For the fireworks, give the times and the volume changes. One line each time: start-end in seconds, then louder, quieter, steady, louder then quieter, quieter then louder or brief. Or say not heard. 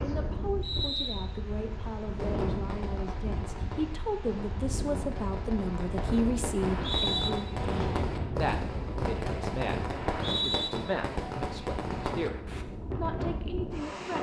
2.1-12.7 louder.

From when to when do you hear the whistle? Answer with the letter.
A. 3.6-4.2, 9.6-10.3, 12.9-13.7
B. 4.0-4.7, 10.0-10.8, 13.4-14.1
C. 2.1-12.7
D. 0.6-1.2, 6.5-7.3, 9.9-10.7
D.